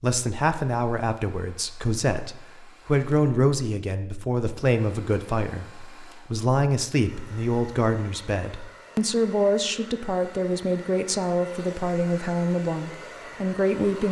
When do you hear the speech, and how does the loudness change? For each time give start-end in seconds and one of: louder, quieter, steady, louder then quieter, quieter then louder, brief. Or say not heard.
0.0-14.0 steady.